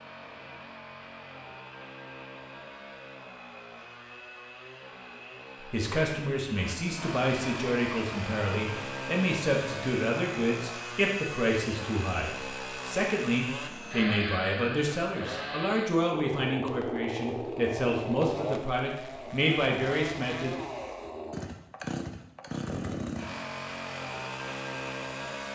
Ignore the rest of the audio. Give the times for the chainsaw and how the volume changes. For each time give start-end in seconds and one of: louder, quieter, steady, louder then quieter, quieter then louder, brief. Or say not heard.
0.0-25.5 louder.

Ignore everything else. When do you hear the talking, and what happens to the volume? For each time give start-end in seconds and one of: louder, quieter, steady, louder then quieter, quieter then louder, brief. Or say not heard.
5.7-20.6 steady.